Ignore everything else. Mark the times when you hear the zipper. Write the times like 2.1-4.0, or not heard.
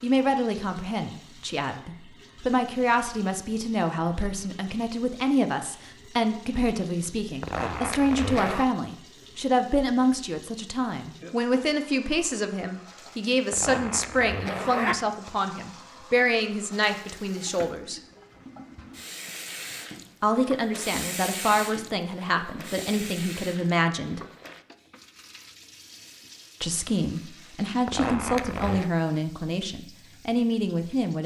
7.4-8.7, 13.5-15.0, 27.9-28.9.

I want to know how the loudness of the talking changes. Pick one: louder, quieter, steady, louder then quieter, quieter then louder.
steady.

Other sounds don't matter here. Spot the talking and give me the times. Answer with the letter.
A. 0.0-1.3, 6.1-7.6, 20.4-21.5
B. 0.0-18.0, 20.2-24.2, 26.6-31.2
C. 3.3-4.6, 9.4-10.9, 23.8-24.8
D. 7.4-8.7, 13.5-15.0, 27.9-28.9
B.